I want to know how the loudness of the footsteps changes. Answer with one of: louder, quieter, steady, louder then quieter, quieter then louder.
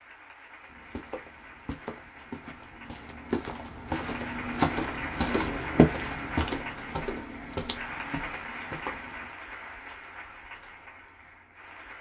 louder then quieter.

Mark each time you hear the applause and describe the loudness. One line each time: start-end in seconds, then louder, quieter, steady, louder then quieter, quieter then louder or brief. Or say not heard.
0.0-11.9 louder then quieter.